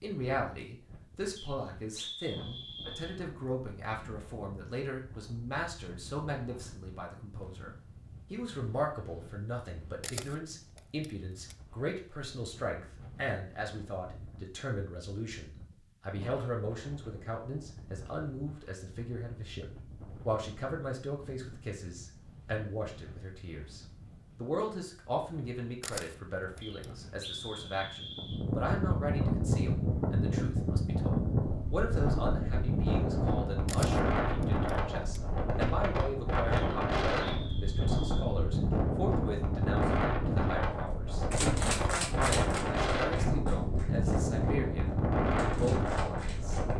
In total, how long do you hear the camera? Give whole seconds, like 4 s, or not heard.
4 s.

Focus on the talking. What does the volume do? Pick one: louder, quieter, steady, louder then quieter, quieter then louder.
steady.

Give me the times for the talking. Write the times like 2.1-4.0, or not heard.
0.0-23.8, 24.4-46.6.